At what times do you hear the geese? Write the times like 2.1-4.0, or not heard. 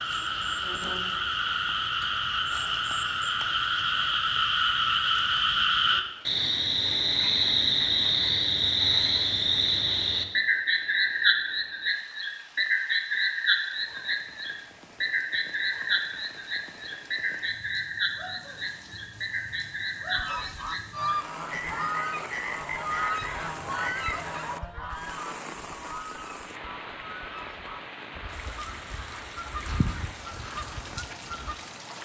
20.1-31.6.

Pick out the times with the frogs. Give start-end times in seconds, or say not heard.
0.0-24.6.